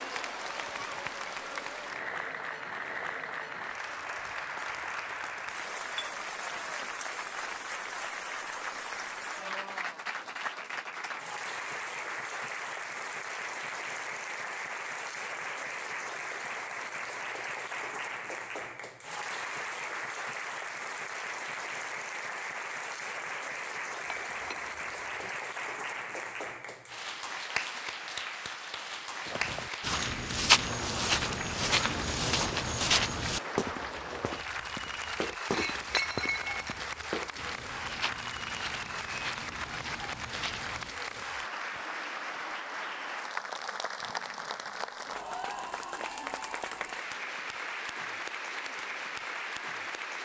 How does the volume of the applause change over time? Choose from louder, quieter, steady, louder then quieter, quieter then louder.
steady.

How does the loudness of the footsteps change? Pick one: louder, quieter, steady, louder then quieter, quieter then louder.
quieter.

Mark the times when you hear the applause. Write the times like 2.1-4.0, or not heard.
0.0-50.2.